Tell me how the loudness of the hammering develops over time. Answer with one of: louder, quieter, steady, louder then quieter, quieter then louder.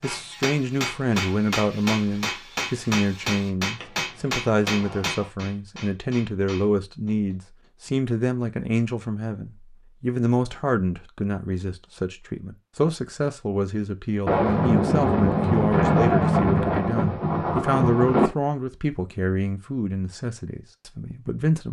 quieter.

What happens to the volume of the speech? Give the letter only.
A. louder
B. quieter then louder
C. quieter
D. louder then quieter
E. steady
E.